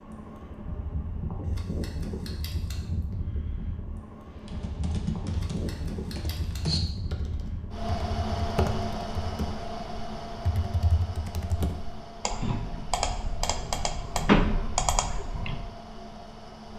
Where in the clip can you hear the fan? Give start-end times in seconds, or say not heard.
0.0-16.7.